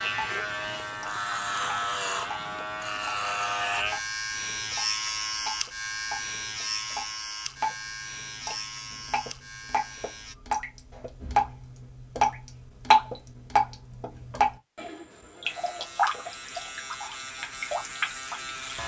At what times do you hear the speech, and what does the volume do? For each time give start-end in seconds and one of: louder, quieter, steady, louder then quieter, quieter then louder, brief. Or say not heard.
not heard.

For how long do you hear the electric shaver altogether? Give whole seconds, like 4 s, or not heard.
14 s.